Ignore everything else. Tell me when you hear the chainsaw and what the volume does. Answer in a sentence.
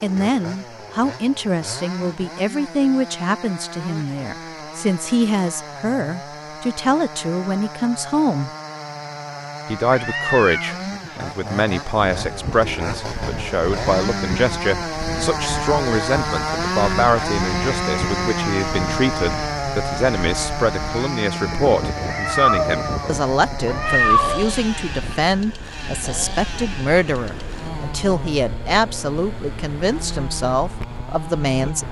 The chainsaw can be heard from 0.0 to 31.8 s, getting louder then quieter.